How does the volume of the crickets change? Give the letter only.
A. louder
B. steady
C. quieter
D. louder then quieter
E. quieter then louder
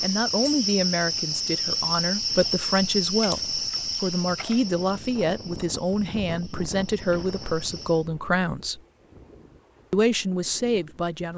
C.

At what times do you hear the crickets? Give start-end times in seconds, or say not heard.
0.0-8.1.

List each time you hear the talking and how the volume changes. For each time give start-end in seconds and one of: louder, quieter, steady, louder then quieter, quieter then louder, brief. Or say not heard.
0.0-8.8 steady
9.9-11.3 brief.